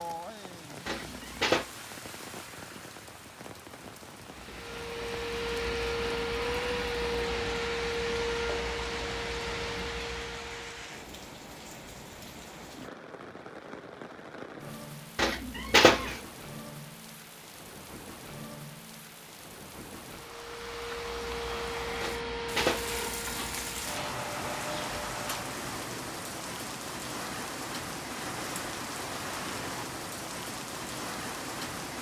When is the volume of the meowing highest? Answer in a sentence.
The volume of the meowing peaks at 16 seconds.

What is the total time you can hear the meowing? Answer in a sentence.
The meowing can be heard for 4 seconds in total.